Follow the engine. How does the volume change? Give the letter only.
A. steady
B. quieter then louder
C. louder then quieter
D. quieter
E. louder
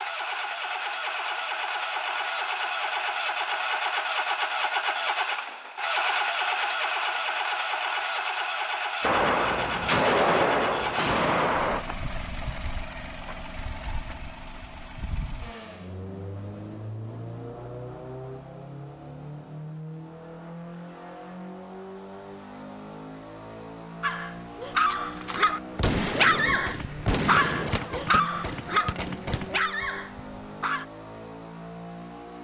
D.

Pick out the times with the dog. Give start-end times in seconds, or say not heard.
24.0-30.9.